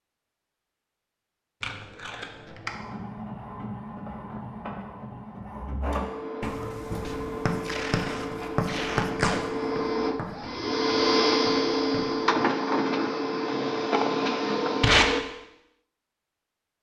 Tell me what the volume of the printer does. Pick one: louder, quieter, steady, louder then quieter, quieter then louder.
louder.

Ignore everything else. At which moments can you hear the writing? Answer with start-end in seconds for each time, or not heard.
6.4-12.3.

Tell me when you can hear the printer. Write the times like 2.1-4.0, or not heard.
2.6-15.2.